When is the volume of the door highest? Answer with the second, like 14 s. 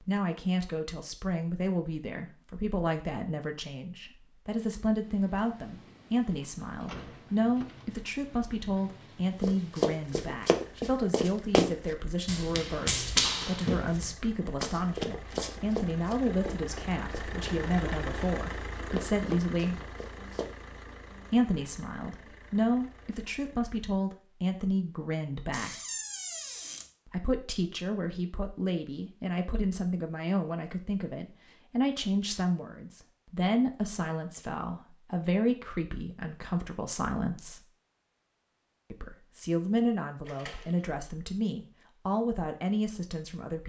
26 s.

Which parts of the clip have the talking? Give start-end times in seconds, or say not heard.
0.0-19.9, 21.3-25.8, 27.1-37.6, 38.9-43.6.